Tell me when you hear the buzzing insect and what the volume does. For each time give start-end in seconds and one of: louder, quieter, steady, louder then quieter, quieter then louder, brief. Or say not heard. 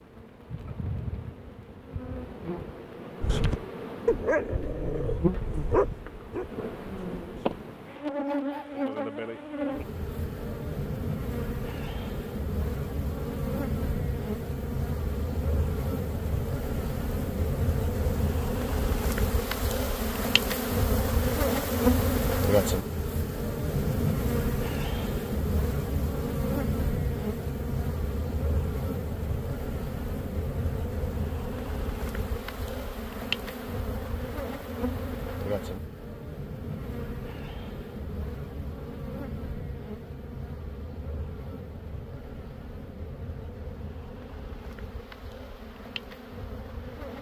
0.0-47.1 louder then quieter.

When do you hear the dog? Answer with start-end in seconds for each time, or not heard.
3.2-8.8.